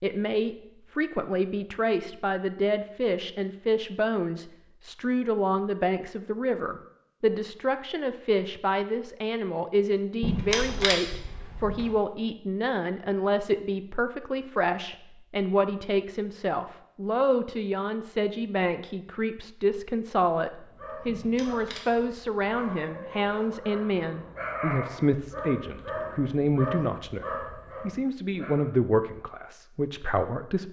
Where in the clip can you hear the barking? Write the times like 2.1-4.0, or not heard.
20.6-28.6.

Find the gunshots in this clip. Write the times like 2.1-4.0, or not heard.
10.2-11.9, 21.1-22.7.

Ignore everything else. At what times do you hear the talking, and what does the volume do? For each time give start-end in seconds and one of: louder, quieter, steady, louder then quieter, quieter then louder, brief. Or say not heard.
0.0-30.6 steady.